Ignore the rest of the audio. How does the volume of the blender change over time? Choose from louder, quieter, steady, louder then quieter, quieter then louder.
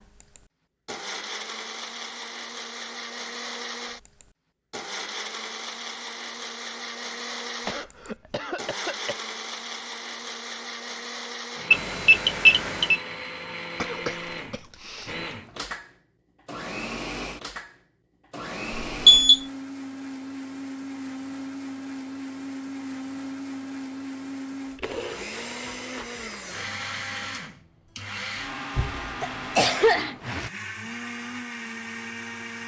steady.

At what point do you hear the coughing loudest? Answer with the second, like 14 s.
30 s.